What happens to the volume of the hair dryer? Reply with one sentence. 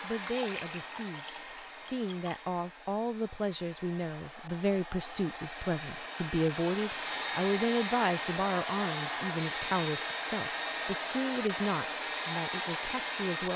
The loudness of the hair dryer goes up.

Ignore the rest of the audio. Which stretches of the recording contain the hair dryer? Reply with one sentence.
You can hear the hair dryer from 0.0 to 13.5 s.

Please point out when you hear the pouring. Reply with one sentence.
You can hear the pouring from 0.1 to 2.5 s.